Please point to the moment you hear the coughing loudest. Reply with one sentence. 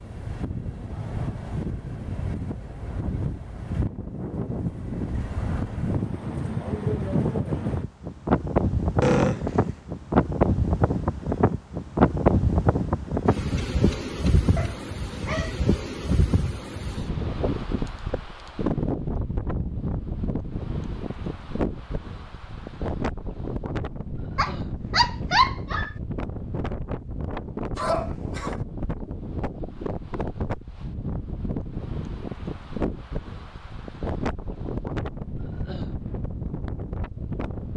The volume of the coughing peaks at 9 seconds.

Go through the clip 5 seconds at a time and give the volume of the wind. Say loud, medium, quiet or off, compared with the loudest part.
medium, loud, loud, medium, medium, medium, medium, medium.